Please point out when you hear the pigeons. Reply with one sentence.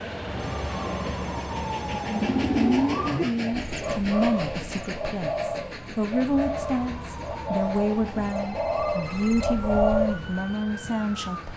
The pigeons can be heard from 2.0 to 10.4 s.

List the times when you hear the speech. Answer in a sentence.
The speech can be heard from 2.5 to 11.5 s.